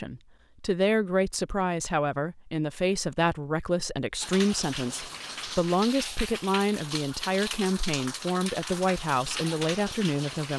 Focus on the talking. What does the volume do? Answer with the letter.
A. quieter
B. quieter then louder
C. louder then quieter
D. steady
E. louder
D.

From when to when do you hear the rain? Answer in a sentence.
The rain can be heard from 4.2 to 10.5 s.